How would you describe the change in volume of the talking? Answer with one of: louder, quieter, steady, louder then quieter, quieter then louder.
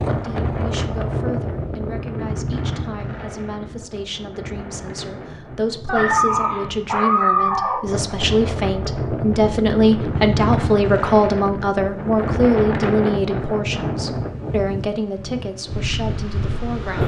louder then quieter.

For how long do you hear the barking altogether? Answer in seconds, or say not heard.
2 s.